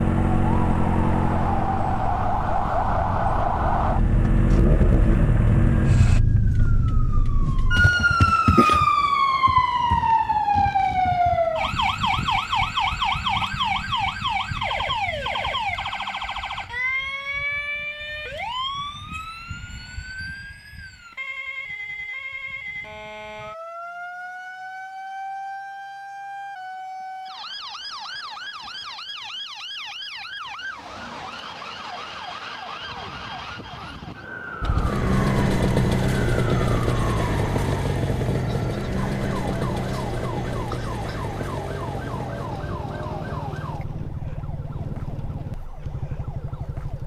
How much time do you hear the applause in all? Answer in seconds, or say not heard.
not heard.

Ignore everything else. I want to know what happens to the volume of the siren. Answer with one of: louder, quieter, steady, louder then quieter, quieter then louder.
quieter.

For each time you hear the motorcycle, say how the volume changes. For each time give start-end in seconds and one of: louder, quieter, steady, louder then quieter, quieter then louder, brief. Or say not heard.
0.0-6.2 quieter then louder
34.6-47.0 quieter.